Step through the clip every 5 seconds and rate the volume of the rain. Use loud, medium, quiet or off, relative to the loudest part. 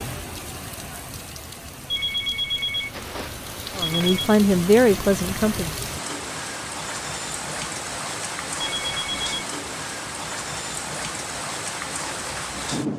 medium, loud, loud.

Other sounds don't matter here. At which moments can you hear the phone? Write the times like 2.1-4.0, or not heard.
1.9-4.3, 8.8-9.4.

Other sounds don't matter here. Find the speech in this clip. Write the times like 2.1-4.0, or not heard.
3.8-5.8.